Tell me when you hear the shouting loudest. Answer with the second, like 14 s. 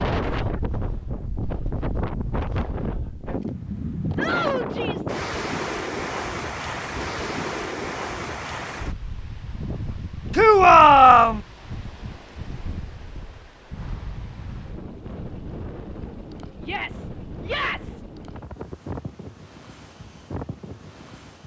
11 s.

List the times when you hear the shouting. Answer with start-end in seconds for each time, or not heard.
4.2-5.1, 10.3-11.4, 16.6-18.1.